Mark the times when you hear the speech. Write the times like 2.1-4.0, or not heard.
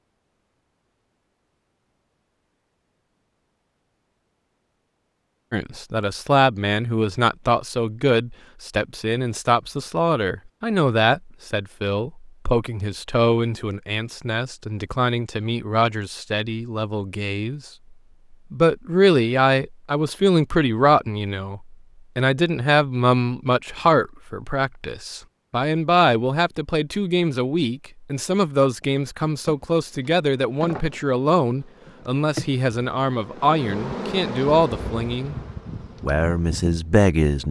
5.5-17.6, 18.5-35.4, 36.0-37.4.